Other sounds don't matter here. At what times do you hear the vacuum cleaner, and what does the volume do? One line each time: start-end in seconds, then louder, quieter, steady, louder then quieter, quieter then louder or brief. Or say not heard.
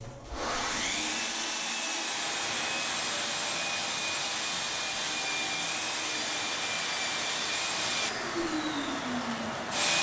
0.0-9.9 steady.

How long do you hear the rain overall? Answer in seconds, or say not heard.
8 s.